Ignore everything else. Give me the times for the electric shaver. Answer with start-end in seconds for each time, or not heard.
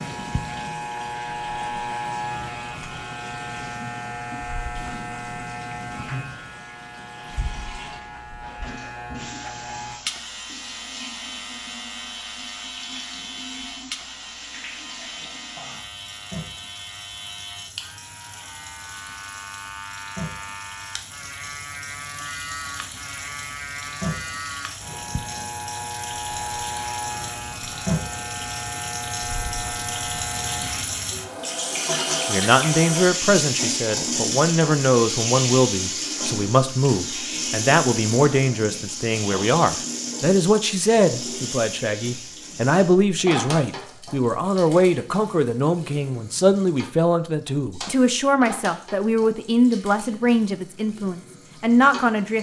0.0-30.9.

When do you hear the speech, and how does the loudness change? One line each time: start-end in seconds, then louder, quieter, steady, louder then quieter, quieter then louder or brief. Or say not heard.
32.2-52.3 steady.